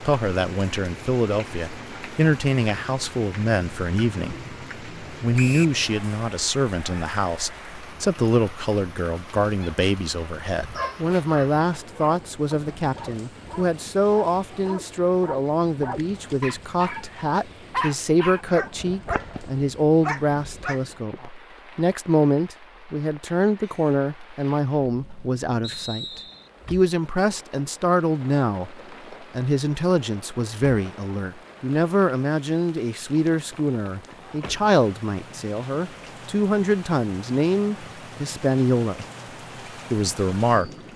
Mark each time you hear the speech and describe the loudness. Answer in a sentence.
You can hear the speech from 0.0 to 39.0 s, at a steady volume; and briefly from 39.9 to 40.7 s.